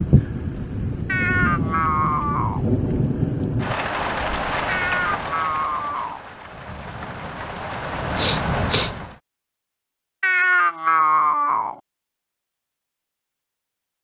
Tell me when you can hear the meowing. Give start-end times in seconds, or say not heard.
1.1-2.6, 4.7-6.2, 10.2-11.8.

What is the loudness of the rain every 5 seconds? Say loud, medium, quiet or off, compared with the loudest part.
loud, medium, off.